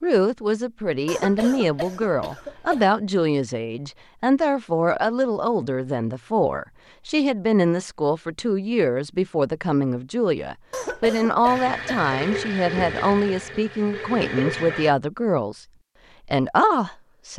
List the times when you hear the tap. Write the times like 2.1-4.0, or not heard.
11.4-14.9.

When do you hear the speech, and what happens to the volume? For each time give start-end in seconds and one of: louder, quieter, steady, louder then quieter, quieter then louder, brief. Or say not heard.
0.0-15.7 steady
16.2-17.3 brief.